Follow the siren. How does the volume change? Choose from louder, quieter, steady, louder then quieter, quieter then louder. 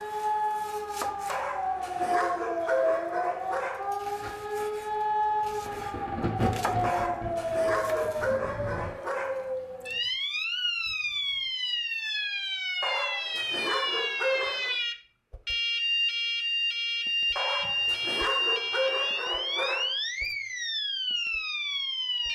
steady.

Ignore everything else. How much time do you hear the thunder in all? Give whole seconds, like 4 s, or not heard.
5 s.